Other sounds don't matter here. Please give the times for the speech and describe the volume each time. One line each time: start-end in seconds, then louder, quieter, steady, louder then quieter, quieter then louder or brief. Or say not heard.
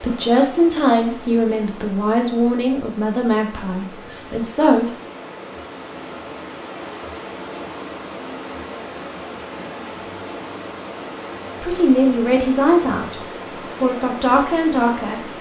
0.0-4.9 quieter
11.6-13.2 brief
13.8-15.2 brief.